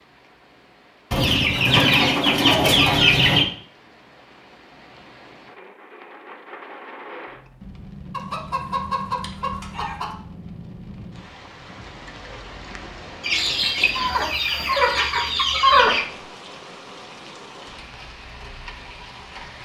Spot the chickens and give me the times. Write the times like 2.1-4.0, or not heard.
1.1-3.5, 8.1-10.2, 13.2-16.1.